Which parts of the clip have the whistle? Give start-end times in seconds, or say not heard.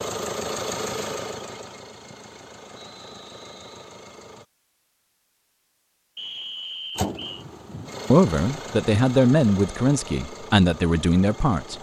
2.8-3.8, 6.2-7.5.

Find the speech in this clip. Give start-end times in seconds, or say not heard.
8.1-11.7.